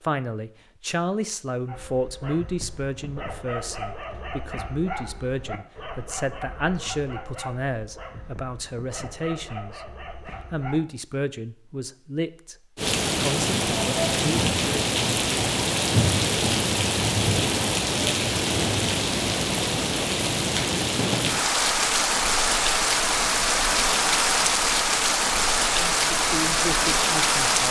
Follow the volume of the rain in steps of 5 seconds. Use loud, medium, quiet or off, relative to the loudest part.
off, off, loud, loud, loud, loud.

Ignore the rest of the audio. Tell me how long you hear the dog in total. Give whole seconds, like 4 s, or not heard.
9 s.